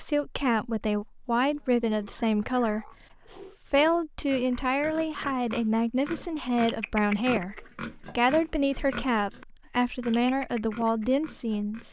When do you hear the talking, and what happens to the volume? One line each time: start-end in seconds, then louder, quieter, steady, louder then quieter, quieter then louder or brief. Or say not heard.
0.0-11.8 steady.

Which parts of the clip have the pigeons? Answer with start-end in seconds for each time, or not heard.
not heard.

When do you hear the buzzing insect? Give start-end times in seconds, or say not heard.
not heard.